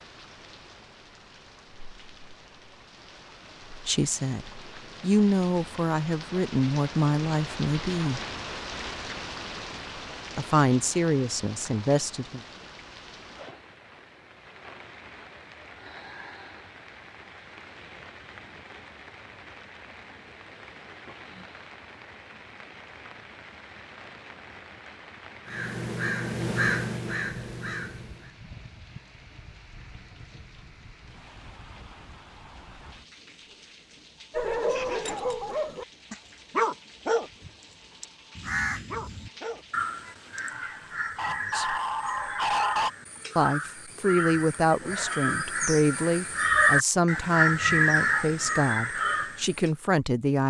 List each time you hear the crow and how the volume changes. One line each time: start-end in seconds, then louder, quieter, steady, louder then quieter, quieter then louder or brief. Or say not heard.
25.4-28.3 brief
38.4-49.7 louder.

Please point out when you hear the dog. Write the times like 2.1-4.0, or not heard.
34.3-42.9.